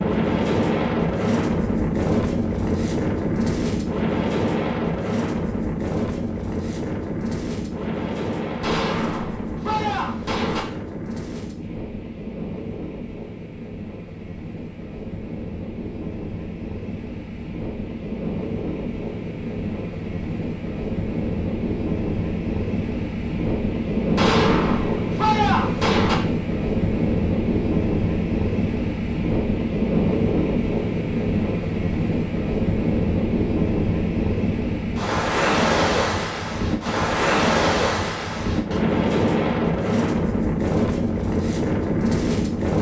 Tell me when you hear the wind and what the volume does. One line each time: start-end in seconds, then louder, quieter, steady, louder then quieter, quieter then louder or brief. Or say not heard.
0.0-42.7 quieter then louder.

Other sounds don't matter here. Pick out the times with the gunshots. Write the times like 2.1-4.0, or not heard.
8.6-10.7, 24.1-26.1.